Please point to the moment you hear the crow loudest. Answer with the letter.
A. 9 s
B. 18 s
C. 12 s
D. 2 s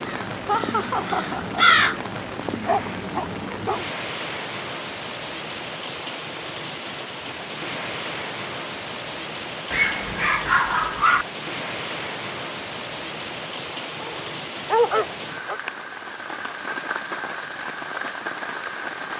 D.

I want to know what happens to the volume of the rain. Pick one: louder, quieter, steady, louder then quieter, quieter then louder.
steady.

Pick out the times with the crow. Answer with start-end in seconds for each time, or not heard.
0.0-2.0.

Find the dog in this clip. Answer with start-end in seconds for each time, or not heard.
2.5-3.9, 9.7-11.2, 14.0-15.6.